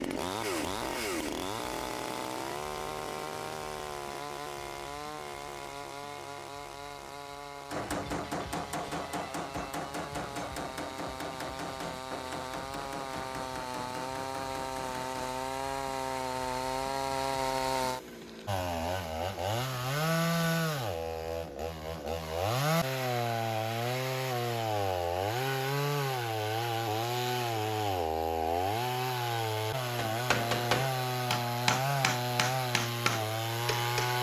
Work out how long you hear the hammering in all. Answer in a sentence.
You can hear the hammering for 12 seconds altogether.